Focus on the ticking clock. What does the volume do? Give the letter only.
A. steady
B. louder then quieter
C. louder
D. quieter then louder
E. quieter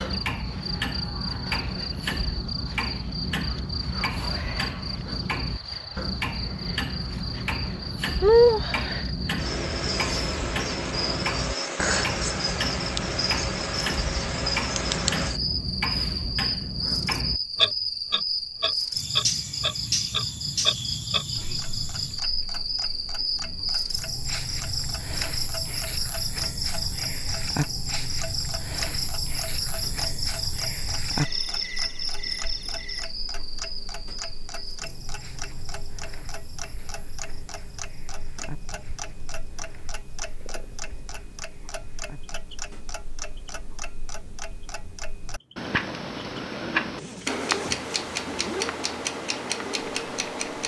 D.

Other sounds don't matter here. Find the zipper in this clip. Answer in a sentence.
You can hear the zipper from 47.0 to 48.8 s.